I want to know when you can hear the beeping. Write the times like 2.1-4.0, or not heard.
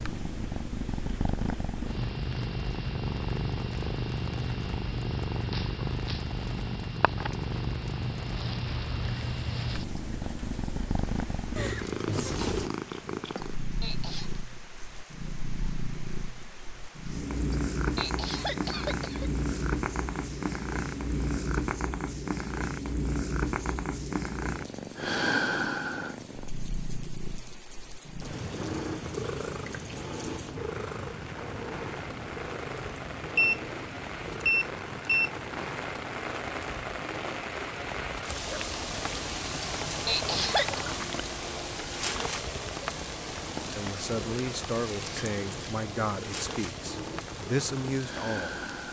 33.4-35.3.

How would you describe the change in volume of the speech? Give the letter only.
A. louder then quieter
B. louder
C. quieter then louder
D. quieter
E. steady
C.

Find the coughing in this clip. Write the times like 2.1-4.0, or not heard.
13.3-14.3, 17.5-19.3, 39.6-40.8.